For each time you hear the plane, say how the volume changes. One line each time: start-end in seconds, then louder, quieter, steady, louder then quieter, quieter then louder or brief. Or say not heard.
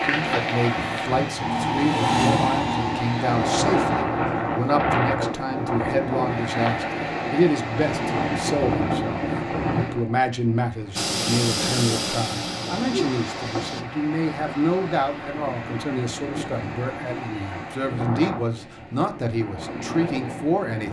0.1-4.0 louder then quieter
10.9-13.8 brief.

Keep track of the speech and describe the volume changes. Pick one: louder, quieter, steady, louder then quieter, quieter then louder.
steady.